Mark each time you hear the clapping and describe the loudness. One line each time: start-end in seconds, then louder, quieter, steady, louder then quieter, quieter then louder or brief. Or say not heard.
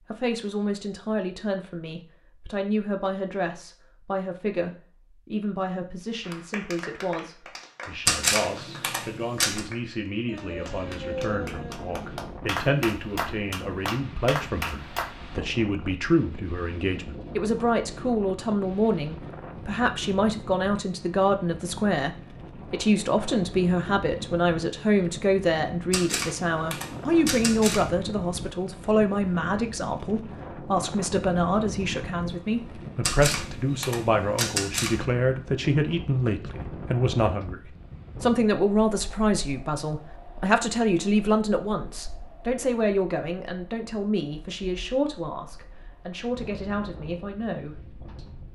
6.2-15.1 louder.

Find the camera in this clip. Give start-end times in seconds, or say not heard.
8.1-9.6, 25.9-27.9, 33.0-35.0.